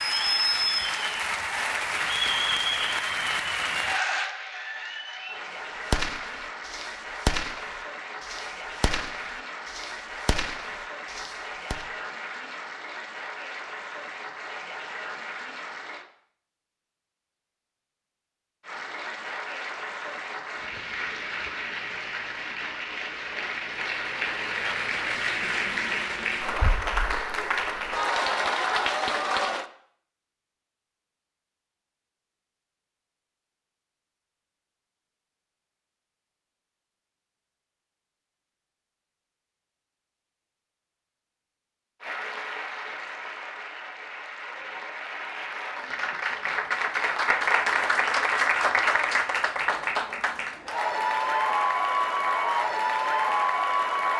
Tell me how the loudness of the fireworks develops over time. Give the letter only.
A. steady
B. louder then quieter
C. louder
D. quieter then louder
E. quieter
E.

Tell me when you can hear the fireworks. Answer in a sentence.
You can hear the fireworks from 5.9 to 11.8 s.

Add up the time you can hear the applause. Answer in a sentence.
You can hear the applause for 39 seconds altogether.